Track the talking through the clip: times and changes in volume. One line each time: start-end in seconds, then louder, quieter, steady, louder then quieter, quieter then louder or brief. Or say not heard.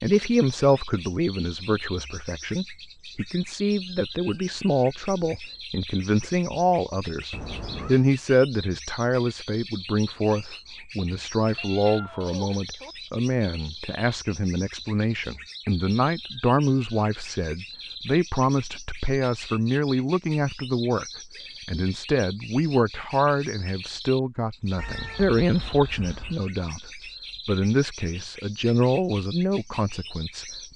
0.0-21.1 steady
21.6-30.7 steady.